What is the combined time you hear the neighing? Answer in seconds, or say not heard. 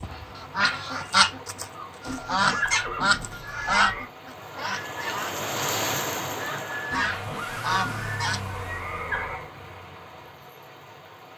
5 s.